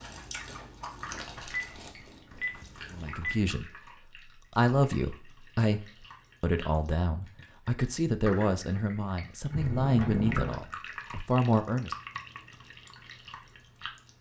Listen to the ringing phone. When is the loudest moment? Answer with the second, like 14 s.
10 s.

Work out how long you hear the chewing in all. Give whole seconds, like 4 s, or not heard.
3 s.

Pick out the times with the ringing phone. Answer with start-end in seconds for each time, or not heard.
1.5-3.5, 9.5-10.6.